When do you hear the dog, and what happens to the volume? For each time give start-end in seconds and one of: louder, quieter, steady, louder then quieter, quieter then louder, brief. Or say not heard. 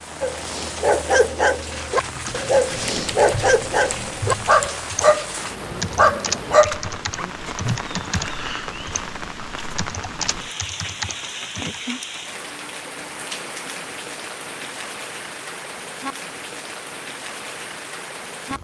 0.2-7.8 steady.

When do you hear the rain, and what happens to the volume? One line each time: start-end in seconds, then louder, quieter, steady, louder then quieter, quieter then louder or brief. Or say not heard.
0.0-18.5 steady.